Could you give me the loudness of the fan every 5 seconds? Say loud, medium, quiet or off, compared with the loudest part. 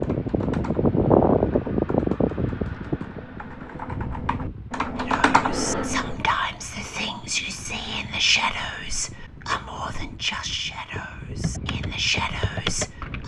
loud, quiet, quiet.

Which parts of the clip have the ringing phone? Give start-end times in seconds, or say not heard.
not heard.